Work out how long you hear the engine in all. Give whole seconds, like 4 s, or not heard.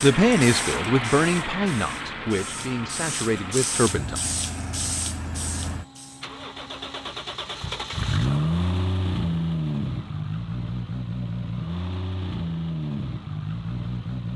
14 s.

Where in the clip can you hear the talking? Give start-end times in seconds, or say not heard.
0.0-4.2.